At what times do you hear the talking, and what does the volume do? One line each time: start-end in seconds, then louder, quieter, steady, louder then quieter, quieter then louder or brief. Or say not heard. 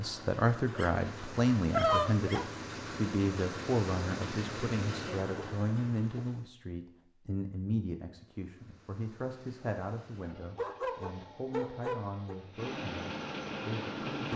0.0-14.3 quieter.